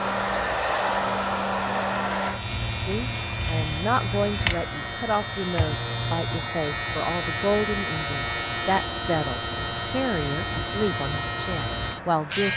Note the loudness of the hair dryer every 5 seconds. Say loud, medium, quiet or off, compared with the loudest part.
loud, medium, medium.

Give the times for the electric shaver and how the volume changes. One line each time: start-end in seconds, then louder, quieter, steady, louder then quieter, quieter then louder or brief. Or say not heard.
0.0-12.5 louder.